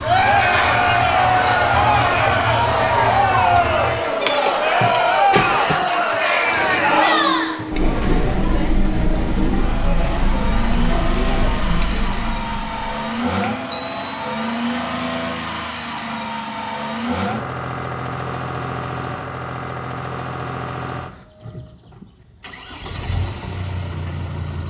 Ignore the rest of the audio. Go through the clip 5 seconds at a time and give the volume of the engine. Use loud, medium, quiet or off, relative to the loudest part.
loud, loud, loud, loud, medium.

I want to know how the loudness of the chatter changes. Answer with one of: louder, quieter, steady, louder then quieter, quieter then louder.
quieter.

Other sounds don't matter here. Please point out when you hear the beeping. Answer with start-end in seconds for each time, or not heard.
13.4-14.2.